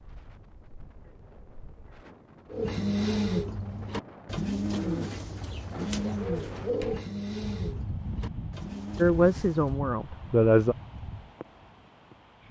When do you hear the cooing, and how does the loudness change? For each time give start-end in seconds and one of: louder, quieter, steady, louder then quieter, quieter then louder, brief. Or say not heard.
2.5-9.8 quieter.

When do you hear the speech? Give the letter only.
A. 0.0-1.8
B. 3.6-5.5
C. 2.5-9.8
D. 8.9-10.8
D.